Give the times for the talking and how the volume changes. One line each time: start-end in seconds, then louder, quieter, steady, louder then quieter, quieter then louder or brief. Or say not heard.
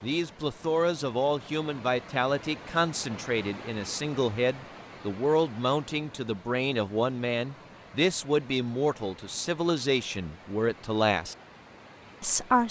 0.0-11.3 steady
12.2-12.6 brief.